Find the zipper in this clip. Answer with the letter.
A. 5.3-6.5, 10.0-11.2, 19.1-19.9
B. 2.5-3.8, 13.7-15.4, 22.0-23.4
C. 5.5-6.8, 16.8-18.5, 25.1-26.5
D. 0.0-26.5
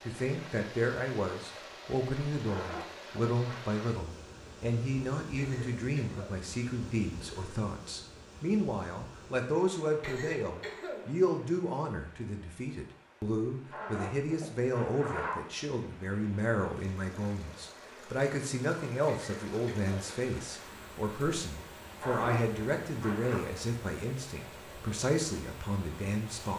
B.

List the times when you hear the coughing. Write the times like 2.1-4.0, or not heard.
5.3-6.5, 10.0-11.2, 19.1-19.9.